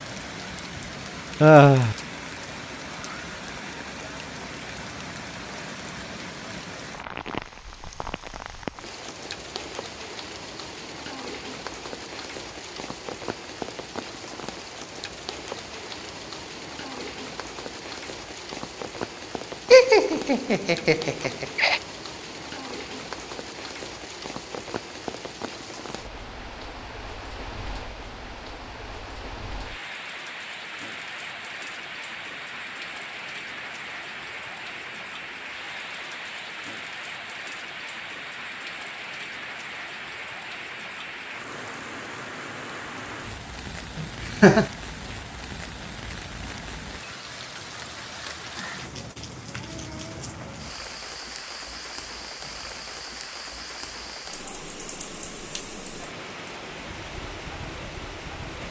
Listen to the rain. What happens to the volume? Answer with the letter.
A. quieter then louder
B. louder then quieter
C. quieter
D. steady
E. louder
D.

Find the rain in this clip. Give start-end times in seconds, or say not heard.
0.0-58.6.